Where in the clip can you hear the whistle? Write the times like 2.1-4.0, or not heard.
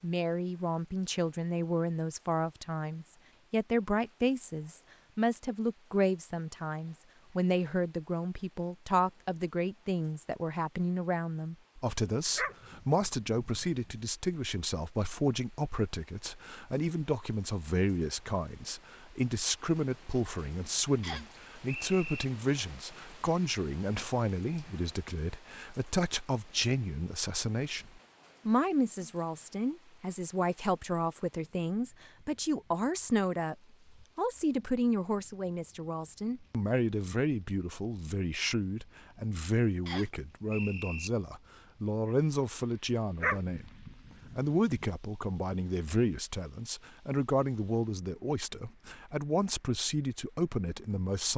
21.0-22.2, 39.9-41.1.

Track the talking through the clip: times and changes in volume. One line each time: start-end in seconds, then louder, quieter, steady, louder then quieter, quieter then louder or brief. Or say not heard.
0.0-33.5 steady
34.1-51.3 steady.